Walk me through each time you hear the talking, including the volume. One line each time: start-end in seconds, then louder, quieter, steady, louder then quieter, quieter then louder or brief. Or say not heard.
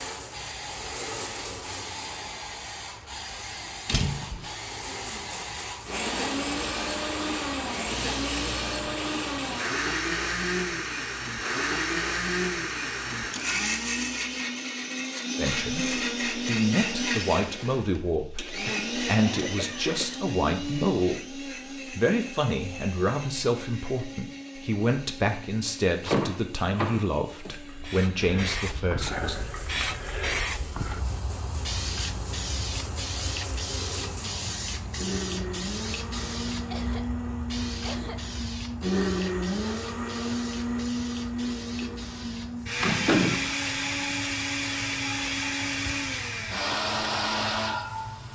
15.3-29.5 steady.